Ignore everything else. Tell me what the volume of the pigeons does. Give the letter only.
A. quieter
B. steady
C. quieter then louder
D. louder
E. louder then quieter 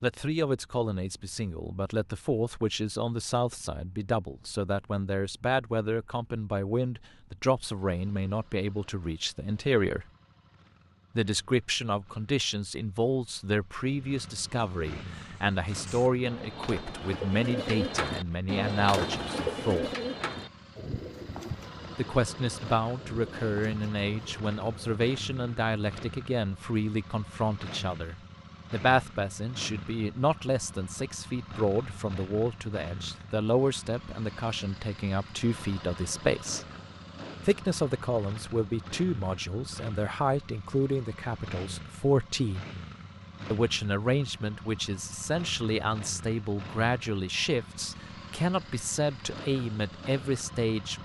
E.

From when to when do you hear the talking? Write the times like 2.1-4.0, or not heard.
0.0-10.1, 11.2-19.9, 21.9-36.6, 37.5-42.6, 43.5-50.9.